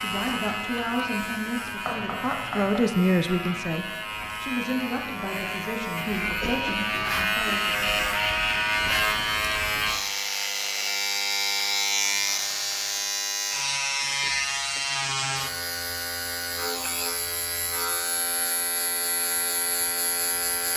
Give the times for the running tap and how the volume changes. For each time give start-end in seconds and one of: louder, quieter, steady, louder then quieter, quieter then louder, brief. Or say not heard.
not heard.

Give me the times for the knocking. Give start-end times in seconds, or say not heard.
1.9-2.8, 12.1-13.0.